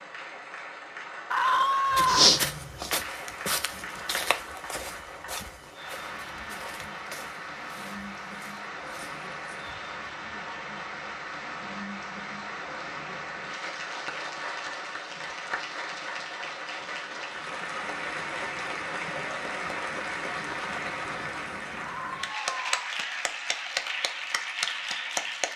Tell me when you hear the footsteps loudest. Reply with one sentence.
The loudest moment of the footsteps is at 2 seconds.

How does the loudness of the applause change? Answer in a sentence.
The loudness of the applause goes up.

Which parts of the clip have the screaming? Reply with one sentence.
The screaming can be heard from 1.3 to 2.3 s and from 21.8 to 22.9 s.